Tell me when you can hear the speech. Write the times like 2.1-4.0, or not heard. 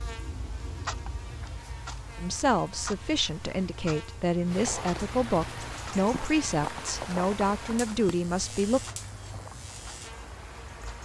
2.1-8.8.